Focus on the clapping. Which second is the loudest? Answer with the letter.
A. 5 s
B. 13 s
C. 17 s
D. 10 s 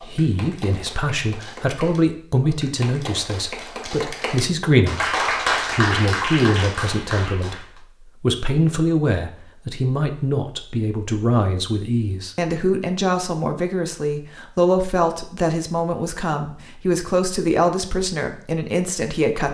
A.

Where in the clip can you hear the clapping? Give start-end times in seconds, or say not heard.
0.0-7.8.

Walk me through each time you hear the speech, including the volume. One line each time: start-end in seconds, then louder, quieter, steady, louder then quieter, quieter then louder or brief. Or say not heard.
0.0-19.5 steady.